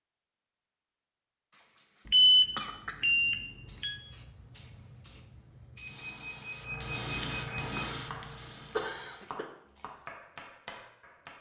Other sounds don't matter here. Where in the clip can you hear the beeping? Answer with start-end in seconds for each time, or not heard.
2.0-4.0, 5.8-7.8.